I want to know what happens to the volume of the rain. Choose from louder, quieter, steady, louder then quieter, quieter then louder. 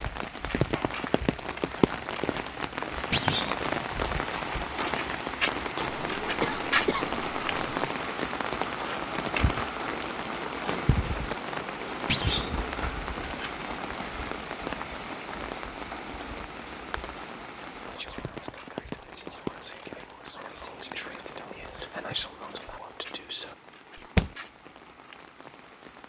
quieter.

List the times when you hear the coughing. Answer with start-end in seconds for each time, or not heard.
5.8-7.9.